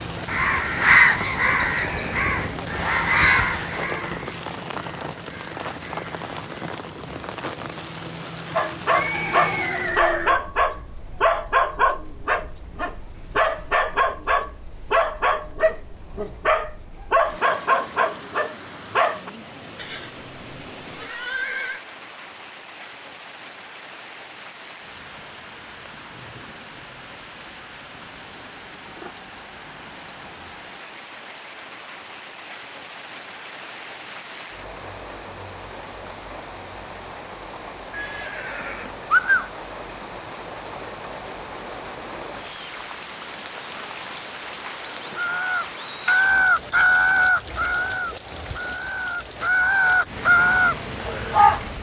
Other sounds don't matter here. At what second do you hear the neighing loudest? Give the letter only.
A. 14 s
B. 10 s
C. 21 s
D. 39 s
D.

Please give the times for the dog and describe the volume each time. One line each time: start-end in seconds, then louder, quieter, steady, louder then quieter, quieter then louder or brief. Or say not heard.
8.6-19.3 steady.